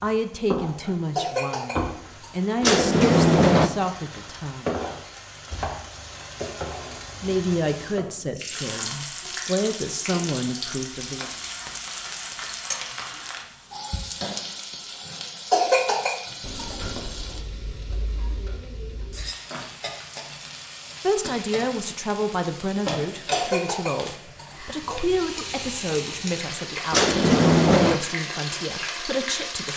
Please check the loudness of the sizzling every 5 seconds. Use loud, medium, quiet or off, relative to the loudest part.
loud, loud, loud, medium, loud, loud.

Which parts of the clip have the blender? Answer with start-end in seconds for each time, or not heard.
not heard.